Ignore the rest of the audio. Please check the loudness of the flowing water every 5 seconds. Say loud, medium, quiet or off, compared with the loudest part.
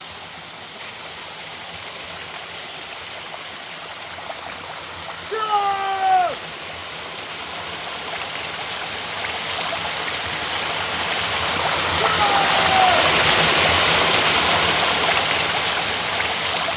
quiet, medium, loud, loud.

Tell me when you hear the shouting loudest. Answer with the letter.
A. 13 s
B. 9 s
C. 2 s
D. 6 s
D.